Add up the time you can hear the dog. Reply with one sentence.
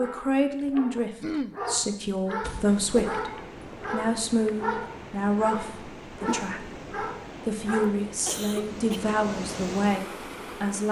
The dog can be heard for 8 seconds in total.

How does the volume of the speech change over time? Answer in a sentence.
The loudness of the speech stays about the same.